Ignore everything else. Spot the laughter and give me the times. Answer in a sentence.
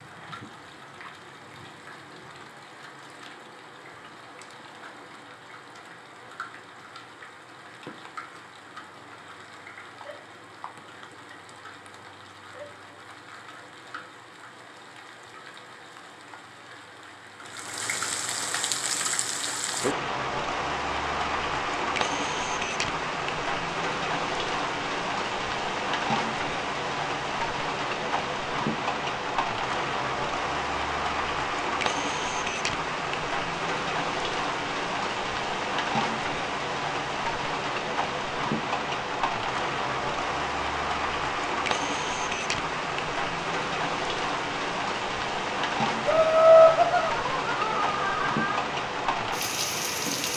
The laughter can be heard from 46.0 to 48.6 s.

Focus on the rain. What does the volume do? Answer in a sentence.
The volume of the rain goes up.